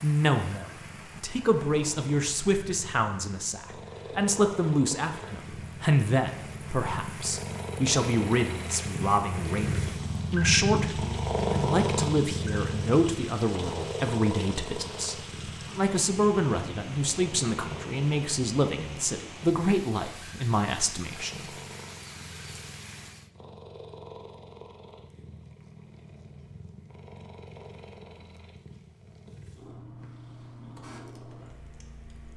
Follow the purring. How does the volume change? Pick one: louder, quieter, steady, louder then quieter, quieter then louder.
louder then quieter.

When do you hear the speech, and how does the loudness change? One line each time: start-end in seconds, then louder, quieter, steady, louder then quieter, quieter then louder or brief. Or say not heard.
0.0-21.5 steady.